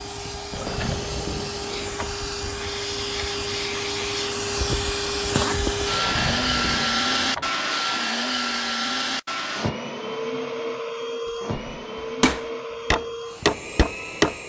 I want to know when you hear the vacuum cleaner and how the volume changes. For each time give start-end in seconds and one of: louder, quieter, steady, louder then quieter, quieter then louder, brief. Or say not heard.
0.0-14.4 louder then quieter.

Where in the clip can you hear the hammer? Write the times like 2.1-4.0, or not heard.
11.9-14.3.